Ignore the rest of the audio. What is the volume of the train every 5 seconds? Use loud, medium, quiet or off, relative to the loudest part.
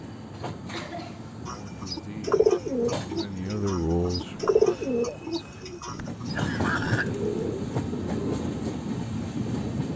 medium, loud.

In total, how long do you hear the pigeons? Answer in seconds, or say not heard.
7 s.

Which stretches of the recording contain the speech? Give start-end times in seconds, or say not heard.
1.4-4.8.